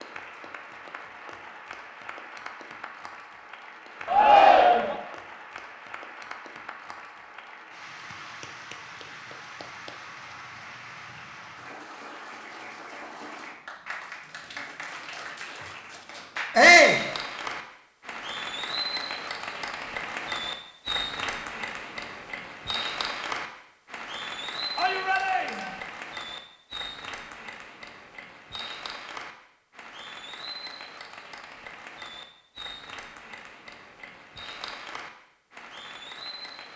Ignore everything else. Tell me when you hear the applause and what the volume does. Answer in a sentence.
The applause can be heard from 0.0 to 36.7 s, getting louder then quieter.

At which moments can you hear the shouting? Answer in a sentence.
You can hear the shouting from 4.0 to 5.0 s, from 16.6 to 17.0 s and from 24.8 to 25.7 s.